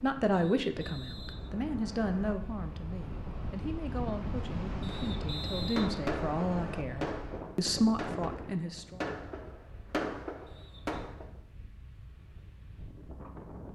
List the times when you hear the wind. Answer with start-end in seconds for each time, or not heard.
0.0-13.6.